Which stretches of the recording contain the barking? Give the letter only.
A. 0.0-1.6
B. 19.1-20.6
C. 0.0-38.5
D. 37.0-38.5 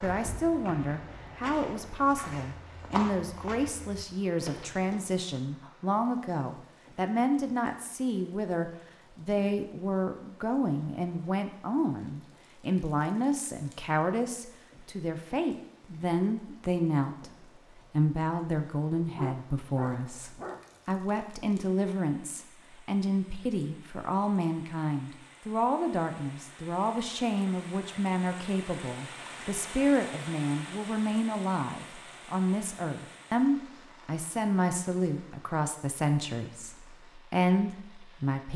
B.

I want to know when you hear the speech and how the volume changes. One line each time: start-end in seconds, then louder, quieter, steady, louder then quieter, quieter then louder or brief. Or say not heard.
0.0-38.5 steady.